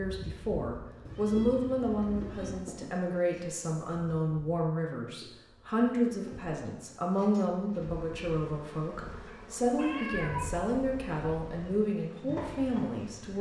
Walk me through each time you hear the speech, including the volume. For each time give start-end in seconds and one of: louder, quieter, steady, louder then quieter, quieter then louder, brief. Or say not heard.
0.0-13.3 steady.